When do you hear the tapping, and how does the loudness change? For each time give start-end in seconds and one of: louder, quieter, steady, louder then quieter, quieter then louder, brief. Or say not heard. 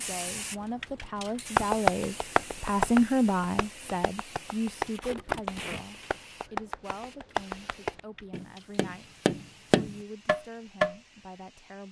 1.6-10.9 quieter then louder.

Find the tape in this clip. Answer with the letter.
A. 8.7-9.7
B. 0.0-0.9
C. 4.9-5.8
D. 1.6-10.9
C.